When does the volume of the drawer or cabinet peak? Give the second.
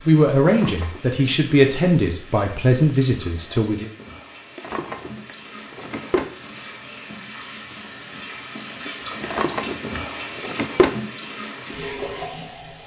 11 s.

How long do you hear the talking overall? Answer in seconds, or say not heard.
4 s.